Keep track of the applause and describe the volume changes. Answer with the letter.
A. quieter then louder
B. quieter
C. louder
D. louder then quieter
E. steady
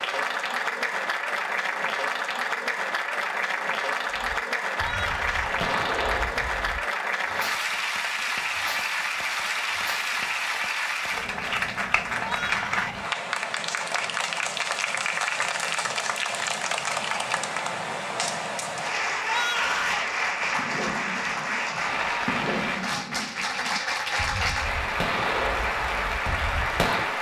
E.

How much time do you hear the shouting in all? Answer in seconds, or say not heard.
3 s.